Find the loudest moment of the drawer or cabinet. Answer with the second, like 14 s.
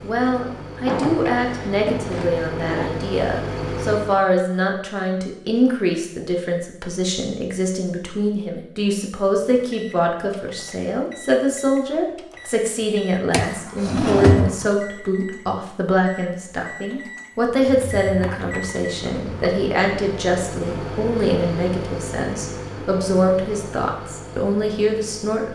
14 s.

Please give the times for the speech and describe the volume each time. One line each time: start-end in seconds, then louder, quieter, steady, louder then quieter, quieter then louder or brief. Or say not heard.
0.0-25.5 steady.